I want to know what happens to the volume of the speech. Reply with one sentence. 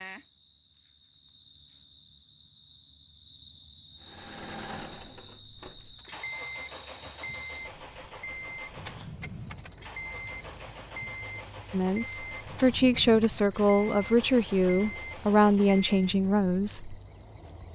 The volume of the speech stays about the same.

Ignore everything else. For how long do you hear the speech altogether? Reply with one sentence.
The speech can be heard for 5 seconds in total.